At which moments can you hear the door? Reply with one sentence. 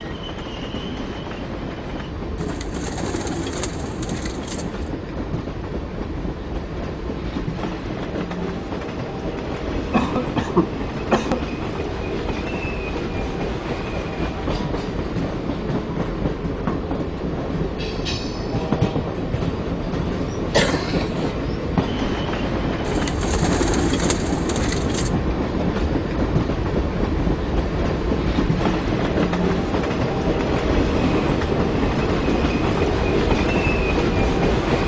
The door can't be heard in this clip.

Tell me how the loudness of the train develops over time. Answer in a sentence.
The volume of the train goes up.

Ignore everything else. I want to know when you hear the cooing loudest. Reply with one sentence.
The loudest moment of the cooing is at 24 seconds.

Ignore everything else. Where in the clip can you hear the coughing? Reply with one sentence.
You can hear the coughing from 9.9 to 11.4 s and from 20.5 to 21.4 s.